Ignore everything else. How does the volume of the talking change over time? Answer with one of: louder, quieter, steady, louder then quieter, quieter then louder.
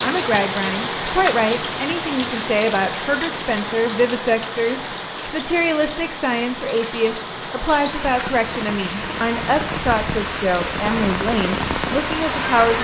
steady.